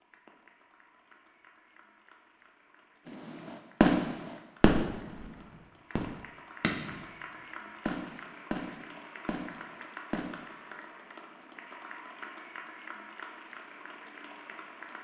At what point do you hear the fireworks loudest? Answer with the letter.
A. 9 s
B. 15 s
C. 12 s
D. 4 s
D.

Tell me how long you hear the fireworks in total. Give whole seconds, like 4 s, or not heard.
6 s.